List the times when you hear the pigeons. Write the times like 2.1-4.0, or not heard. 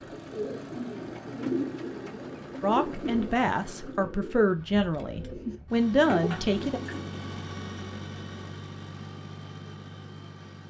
0.0-7.2.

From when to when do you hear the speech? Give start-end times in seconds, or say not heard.
2.6-6.8.